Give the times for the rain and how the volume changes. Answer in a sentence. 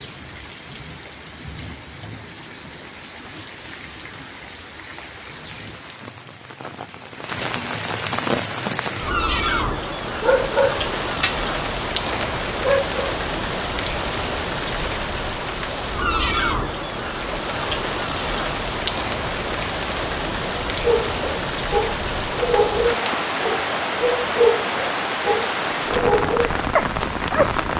The rain can be heard from 0.0 to 27.7 s, getting louder.